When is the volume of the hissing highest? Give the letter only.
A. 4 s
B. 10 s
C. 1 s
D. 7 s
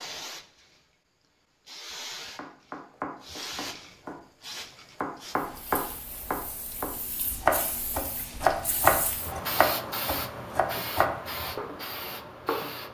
B.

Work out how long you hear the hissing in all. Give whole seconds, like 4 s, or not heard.
13 s.